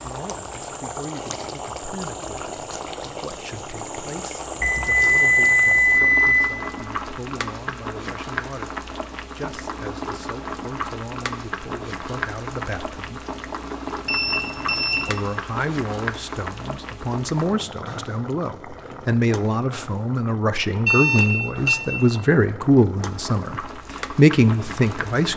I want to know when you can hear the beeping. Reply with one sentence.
You can hear the beeping from 4.6 to 6.5 s, from 14.1 to 15.2 s and from 20.9 to 21.9 s.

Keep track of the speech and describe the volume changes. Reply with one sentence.
The volume of the speech goes up.